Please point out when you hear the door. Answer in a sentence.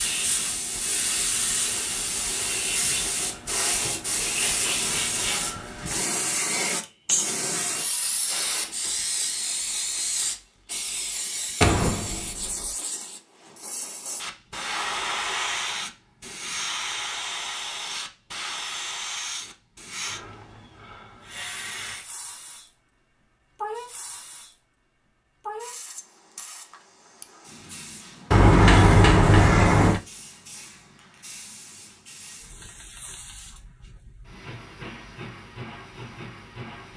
You can hear the door from 11.6 to 12.7 s and from 28.3 to 30.0 s.